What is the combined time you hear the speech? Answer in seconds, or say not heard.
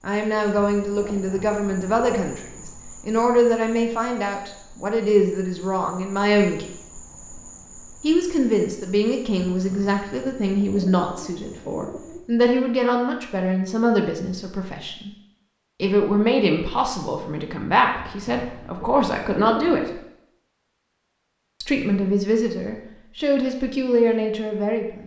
21 s.